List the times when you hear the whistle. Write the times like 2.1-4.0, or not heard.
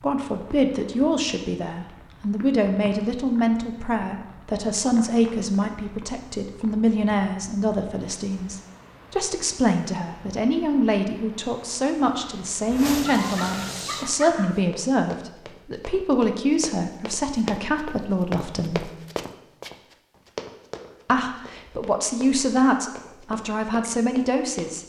not heard.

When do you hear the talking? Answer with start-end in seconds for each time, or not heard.
0.0-18.9, 21.1-24.8.